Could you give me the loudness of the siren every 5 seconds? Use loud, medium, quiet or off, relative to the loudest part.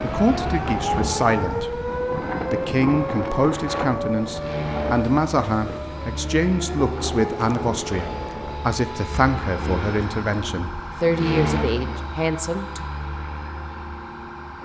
loud, medium, medium.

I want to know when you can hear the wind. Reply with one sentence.
You can hear the wind from 0.0 to 8.6 s.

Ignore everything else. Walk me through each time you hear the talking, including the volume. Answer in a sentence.
The talking can be heard briefly from 0.0 to 1.9 s; and from 2.5 to 12.8 s, at a steady volume.